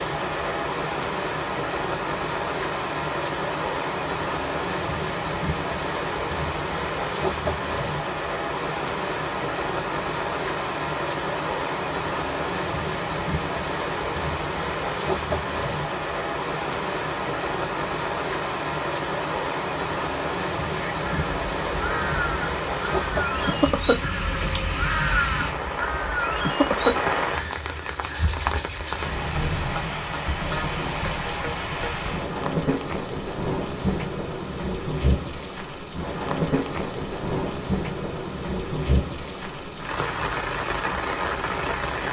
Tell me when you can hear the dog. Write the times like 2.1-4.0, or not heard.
not heard.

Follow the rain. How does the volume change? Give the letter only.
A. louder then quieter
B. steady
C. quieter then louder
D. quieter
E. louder
B.